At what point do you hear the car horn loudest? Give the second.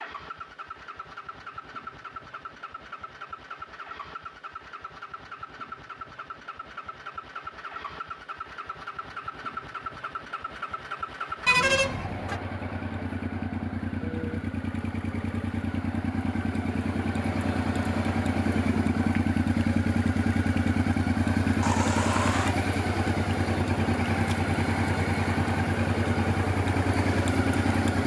12 s.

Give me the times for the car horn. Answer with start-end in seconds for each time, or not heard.
11.4-12.4, 21.6-22.6.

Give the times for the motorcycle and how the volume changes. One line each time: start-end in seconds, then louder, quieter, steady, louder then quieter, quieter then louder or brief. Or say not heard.
0.0-28.0 louder.